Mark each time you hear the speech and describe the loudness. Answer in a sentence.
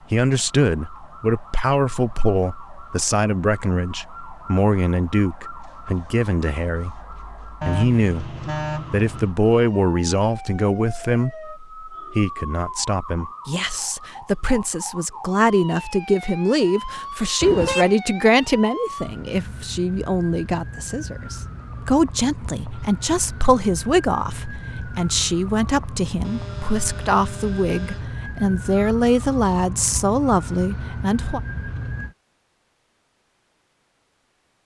You can hear the speech from 0.1 to 31.4 s, at a steady volume.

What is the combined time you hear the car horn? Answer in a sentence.
The car horn can be heard for 4 seconds in total.